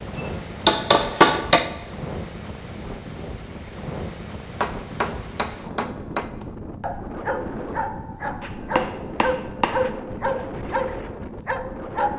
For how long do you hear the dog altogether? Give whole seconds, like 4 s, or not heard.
5 s.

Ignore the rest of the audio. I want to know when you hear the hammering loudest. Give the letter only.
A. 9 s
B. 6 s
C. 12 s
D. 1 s
D.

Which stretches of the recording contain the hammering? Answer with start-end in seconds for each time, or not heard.
0.1-1.7, 4.6-6.5, 8.4-9.9.